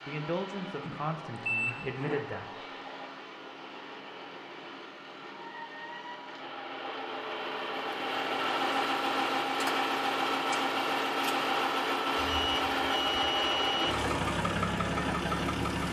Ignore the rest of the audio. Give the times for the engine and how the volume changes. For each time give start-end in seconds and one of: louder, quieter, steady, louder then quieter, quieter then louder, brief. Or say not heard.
0.0-15.8 louder.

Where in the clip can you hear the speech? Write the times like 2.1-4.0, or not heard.
0.1-2.5.